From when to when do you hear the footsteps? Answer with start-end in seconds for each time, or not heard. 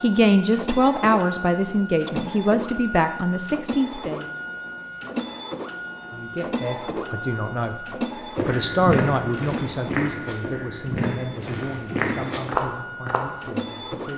8.3-13.2.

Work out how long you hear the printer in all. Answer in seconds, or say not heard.
14 s.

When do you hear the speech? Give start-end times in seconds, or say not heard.
0.0-4.2, 6.1-7.8, 8.4-14.1.